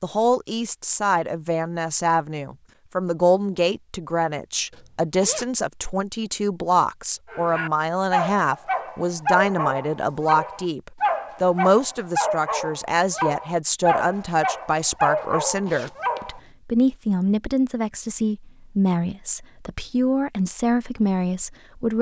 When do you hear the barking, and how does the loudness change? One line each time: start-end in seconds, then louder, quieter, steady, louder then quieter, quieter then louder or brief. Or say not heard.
7.3-16.4 steady.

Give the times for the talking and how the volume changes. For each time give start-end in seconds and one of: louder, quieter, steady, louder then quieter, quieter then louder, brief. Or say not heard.
0.0-21.9 steady.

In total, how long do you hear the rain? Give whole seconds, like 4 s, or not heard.
not heard.